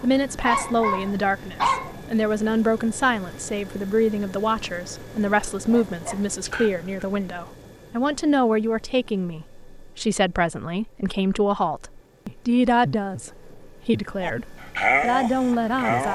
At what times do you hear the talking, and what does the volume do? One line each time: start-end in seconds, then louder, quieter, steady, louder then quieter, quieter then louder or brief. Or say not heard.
0.0-16.1 steady.